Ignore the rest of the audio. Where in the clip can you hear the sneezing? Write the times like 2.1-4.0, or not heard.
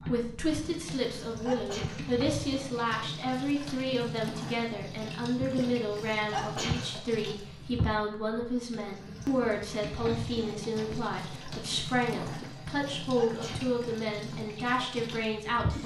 0.5-2.1, 5.4-7.0, 12.2-13.8.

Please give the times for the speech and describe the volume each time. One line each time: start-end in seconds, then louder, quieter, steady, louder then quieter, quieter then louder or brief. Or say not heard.
0.0-15.8 steady.